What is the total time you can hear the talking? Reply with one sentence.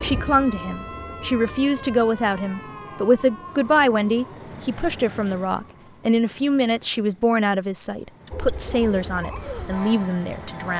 You can hear the talking for 11 seconds altogether.